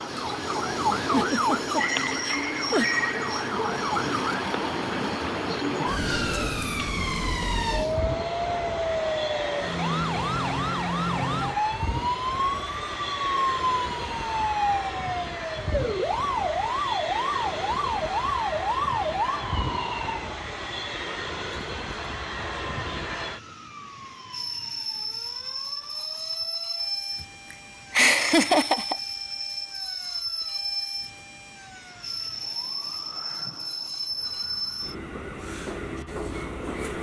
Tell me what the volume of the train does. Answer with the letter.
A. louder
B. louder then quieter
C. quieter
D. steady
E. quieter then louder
D.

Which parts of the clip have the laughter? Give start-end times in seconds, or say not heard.
0.9-2.9, 27.2-28.9.